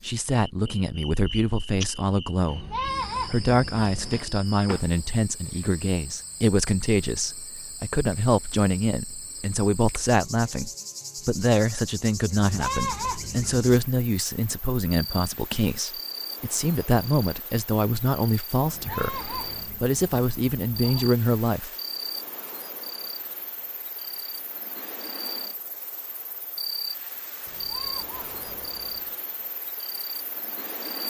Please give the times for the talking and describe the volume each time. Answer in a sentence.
The talking can be heard from 0.0 to 21.7 s, at a steady volume.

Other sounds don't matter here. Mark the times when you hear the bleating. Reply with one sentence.
You can hear the bleating from 2.5 to 4.3 s, from 12.3 to 13.8 s, from 18.6 to 21.1 s and from 27.4 to 29.1 s.